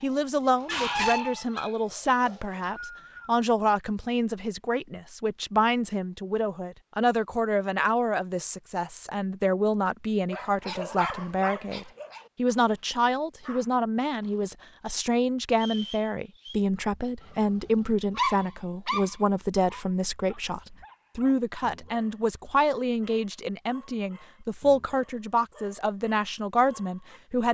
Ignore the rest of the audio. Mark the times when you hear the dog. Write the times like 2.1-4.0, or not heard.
0.0-2.8, 10.2-14.6, 17.2-27.2.